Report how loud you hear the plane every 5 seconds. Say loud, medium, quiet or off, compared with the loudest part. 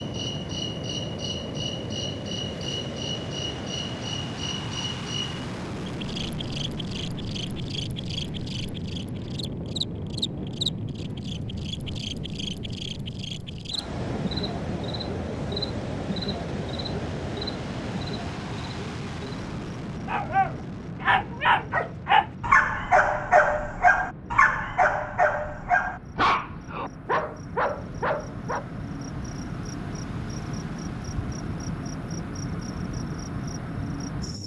loud, loud, loud, loud, medium, quiet, medium.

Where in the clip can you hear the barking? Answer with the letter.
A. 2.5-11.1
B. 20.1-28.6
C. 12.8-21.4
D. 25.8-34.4
B.